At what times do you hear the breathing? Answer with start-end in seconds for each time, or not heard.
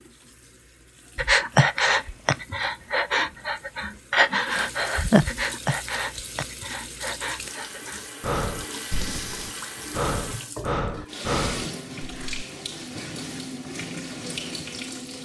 1.1-12.4.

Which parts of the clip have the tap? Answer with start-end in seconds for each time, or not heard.
0.0-15.1.